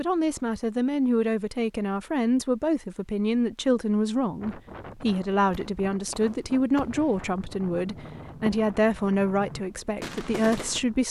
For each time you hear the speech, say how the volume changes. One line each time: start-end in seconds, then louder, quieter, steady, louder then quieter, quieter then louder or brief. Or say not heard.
0.0-11.0 steady.